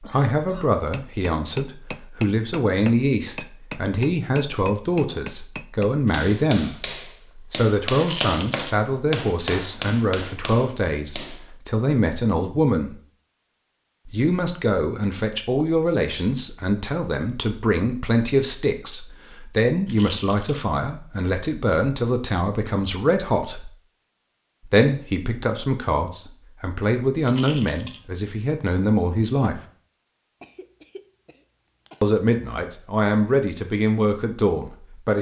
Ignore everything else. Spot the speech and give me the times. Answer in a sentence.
You can hear the speech from 0.0 to 12.9 s, from 14.1 to 23.7 s, from 24.6 to 29.6 s and from 32.0 to 35.1 s.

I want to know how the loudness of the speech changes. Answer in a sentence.
The volume of the speech stays about the same.